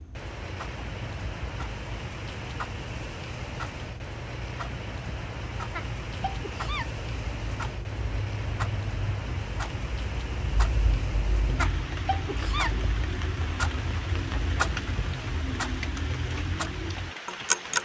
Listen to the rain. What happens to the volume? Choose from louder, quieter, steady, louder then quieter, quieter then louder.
steady.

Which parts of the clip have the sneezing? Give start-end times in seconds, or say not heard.
5.7-7.0, 11.6-12.8.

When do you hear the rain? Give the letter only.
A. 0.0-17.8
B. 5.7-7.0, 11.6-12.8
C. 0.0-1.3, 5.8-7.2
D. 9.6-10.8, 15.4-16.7
A.